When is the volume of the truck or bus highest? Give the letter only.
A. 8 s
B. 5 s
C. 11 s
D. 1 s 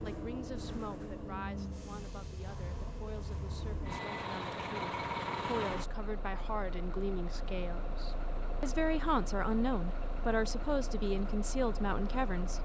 B.